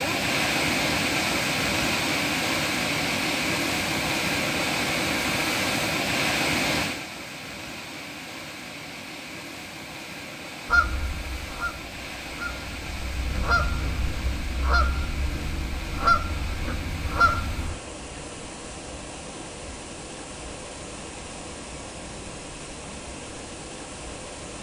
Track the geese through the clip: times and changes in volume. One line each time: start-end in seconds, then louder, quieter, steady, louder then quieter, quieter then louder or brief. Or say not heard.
10.7-17.8 louder.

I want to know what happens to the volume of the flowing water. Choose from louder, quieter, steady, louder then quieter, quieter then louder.
quieter.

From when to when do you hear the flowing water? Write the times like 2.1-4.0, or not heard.
0.0-24.5.